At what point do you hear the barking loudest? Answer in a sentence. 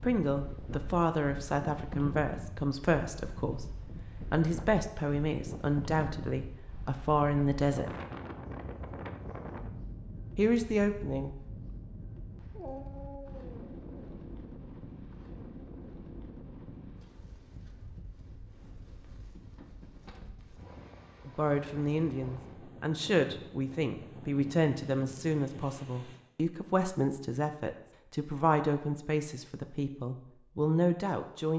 The volume of the barking peaks at 13 seconds.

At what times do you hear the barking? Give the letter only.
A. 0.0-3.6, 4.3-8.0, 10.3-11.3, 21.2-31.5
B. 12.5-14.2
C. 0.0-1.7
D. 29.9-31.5
B.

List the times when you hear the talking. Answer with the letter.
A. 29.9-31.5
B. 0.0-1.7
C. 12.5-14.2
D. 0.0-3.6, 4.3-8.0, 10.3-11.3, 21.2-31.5
D.